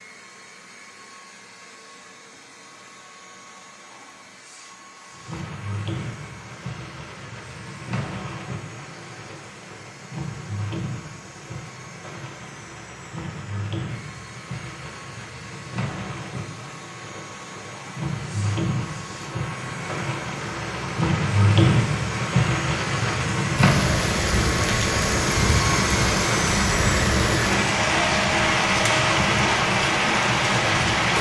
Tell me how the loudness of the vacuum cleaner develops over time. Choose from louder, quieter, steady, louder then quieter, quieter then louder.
louder.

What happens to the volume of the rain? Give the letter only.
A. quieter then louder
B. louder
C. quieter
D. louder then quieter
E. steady
B.